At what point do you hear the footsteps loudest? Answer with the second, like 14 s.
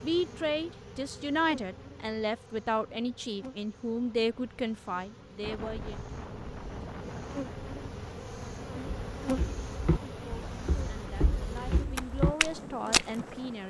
13 s.